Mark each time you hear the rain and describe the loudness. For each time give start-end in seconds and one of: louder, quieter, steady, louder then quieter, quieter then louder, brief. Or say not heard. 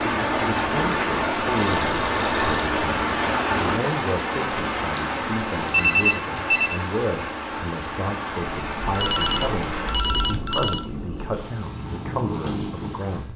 0.0-10.4 quieter.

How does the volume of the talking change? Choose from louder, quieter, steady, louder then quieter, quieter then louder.
steady.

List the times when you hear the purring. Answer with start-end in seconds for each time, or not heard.
8.6-13.3.